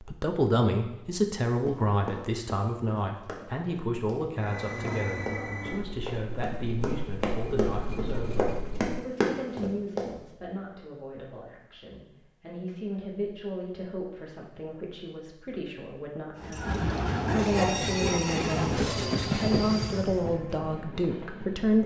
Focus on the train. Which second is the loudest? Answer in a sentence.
The volume of the train peaks at 19 seconds.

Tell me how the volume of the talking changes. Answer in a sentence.
The volume of the talking goes down, then up.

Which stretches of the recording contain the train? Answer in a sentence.
The train can be heard from 4.3 to 9.0 s and from 16.4 to 21.8 s.